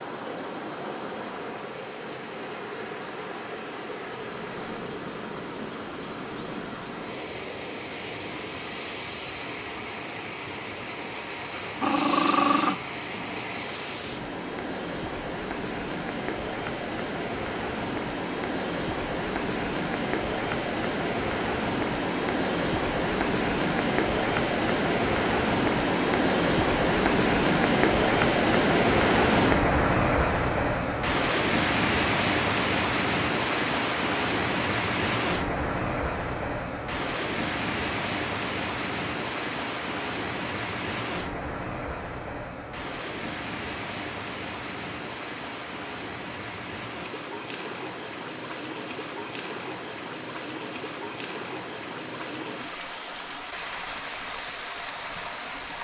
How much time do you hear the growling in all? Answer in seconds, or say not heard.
2 s.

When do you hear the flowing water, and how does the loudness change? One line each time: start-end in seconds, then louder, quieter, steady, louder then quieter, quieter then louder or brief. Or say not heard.
0.0-55.7 louder then quieter.